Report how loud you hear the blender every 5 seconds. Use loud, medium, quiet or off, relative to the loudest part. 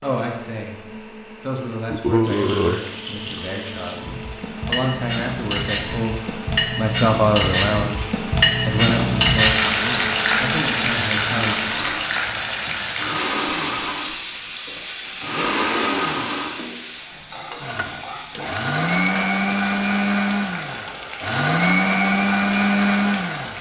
quiet, quiet, medium, loud, loud.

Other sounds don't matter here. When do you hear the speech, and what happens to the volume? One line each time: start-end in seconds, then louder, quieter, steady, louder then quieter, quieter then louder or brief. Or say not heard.
0.0-0.8 brief
1.4-11.8 louder then quieter.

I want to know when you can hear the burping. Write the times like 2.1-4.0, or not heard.
1.9-2.8.